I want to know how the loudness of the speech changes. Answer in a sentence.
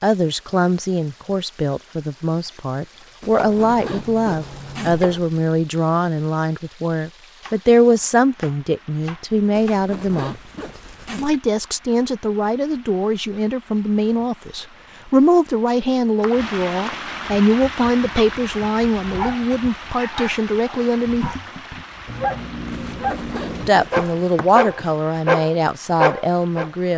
The loudness of the speech stays about the same.